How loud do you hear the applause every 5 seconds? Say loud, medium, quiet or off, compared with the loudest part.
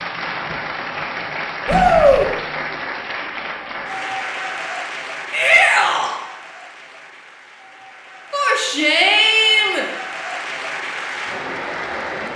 loud, medium, loud.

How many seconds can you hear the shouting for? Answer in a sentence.
You can hear the shouting for 3 seconds altogether.